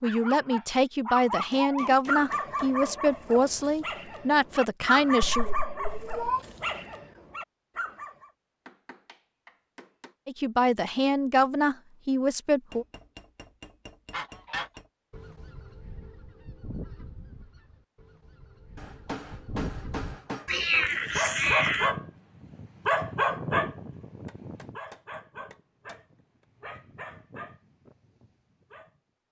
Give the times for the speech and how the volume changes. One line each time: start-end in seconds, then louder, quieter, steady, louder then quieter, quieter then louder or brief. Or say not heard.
0.0-5.5 steady
10.2-12.8 brief.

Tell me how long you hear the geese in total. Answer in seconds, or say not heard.
6 s.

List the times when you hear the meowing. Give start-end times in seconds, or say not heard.
5.3-6.4, 20.4-21.9.